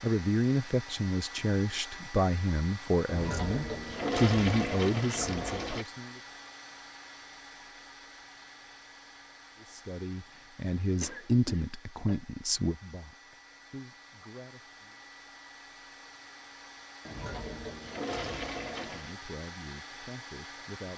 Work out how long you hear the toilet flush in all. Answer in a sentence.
You can hear the toilet flush for 5 seconds altogether.